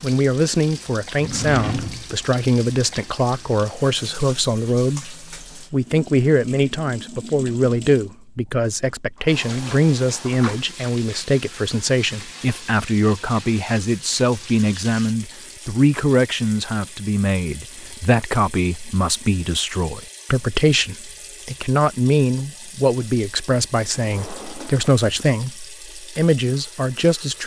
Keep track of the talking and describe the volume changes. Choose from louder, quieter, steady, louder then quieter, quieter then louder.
steady.